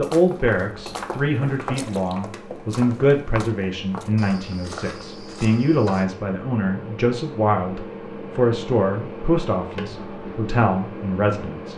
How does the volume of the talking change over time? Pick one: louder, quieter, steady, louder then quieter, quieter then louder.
steady.